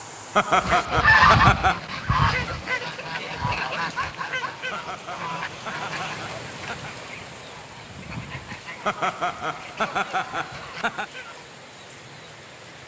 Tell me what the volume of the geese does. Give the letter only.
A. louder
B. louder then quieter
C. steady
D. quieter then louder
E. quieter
E.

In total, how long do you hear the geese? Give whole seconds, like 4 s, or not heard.
11 s.